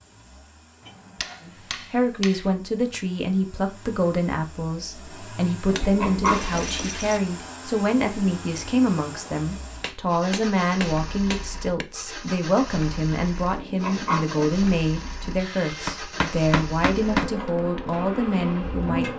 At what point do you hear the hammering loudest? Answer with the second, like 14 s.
17 s.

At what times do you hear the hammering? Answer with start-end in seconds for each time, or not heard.
0.8-2.5, 5.7-7.2, 9.8-11.8, 15.3-17.6.